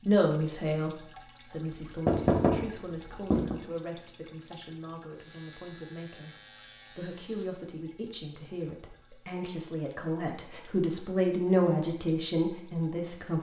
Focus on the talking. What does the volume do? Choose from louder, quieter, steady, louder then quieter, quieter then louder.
quieter then louder.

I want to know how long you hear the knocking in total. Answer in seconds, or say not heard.
2 s.